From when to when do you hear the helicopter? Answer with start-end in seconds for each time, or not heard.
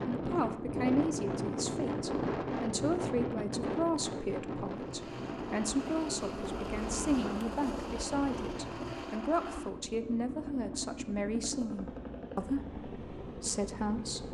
4.7-14.2.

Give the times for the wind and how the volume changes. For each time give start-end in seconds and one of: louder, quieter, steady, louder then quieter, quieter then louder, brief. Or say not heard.
0.0-8.9 quieter.